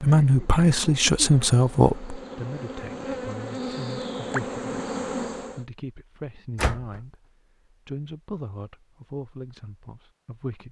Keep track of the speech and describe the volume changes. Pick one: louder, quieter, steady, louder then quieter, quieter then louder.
quieter.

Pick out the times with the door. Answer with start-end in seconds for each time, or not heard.
6.5-7.0.